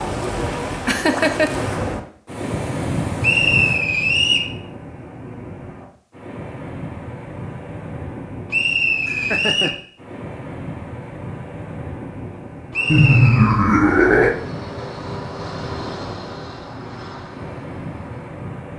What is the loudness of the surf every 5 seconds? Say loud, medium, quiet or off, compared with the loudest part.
loud, medium, medium, medium.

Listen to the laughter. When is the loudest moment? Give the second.
13 s.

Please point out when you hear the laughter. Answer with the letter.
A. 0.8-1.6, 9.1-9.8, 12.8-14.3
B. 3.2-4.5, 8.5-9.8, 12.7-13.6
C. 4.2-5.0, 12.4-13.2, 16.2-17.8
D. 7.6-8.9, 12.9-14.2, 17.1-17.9
A.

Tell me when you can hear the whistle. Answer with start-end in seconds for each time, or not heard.
3.2-4.5, 8.5-9.8, 12.7-13.6.